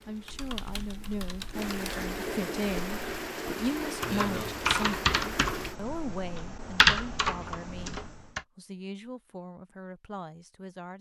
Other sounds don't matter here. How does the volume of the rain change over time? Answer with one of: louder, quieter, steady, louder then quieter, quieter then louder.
louder.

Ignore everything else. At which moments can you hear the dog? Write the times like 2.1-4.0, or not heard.
not heard.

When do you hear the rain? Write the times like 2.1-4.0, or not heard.
0.0-5.8.